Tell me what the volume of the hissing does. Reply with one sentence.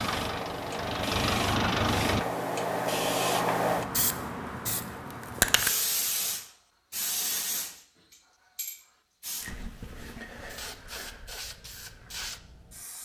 The volume of the hissing goes down.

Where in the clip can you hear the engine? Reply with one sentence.
The engine can be heard from 0.0 to 2.2 s.